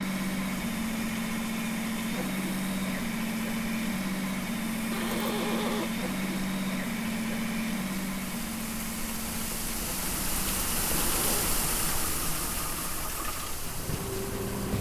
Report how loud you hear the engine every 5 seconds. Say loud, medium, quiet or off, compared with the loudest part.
loud, loud, medium.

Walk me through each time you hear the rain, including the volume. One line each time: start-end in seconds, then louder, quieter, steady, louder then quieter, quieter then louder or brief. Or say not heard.
0.0-14.7 louder.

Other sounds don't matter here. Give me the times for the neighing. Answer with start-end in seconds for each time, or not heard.
4.9-5.9, 11.1-11.5.